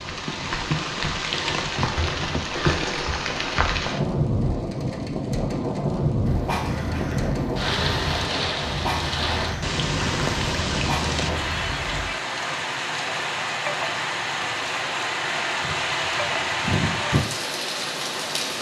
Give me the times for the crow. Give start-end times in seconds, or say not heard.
6.2-12.1.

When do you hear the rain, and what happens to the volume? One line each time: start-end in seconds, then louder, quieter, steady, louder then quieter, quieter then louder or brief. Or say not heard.
0.0-18.5 steady.